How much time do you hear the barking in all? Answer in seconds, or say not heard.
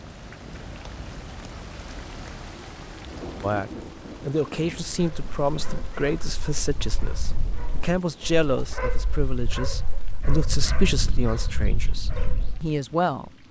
8 s.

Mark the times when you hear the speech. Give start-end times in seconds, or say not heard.
3.4-13.4.